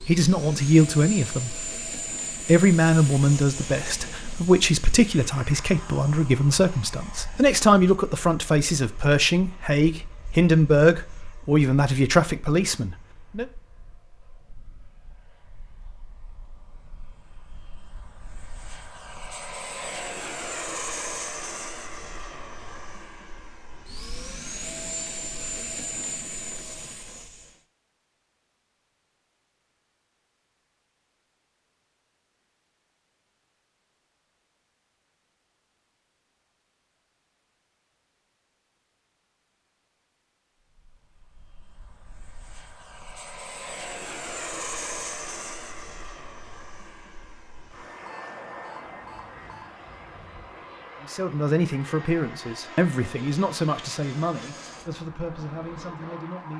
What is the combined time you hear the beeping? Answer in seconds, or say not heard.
2 s.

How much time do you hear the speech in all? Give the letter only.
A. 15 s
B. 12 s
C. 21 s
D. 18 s
D.